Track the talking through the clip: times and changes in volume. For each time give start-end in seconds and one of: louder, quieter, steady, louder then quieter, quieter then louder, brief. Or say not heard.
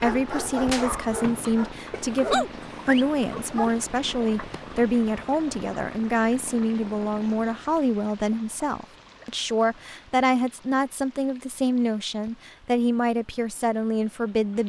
0.0-14.6 steady.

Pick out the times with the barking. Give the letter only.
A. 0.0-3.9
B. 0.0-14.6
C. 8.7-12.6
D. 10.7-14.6
A.